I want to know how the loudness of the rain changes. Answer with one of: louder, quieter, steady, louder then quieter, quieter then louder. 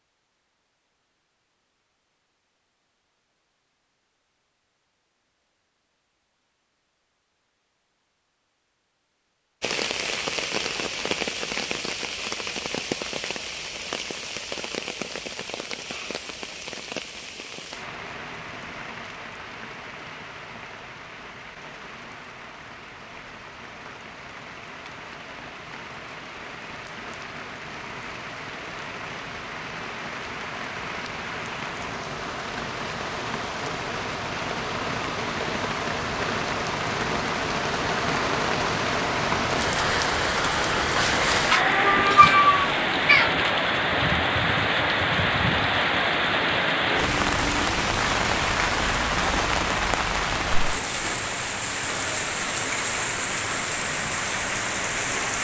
quieter then louder.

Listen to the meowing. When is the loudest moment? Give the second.
42 s.